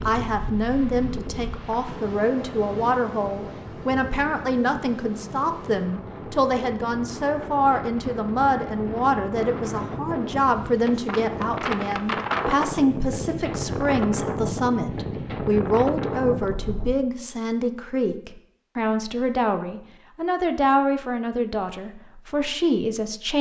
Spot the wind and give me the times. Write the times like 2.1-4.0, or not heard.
0.0-16.9.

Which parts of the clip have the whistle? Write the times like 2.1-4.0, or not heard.
not heard.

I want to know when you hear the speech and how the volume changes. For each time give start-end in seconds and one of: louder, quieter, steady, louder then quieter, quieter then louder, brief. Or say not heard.
0.0-23.3 steady.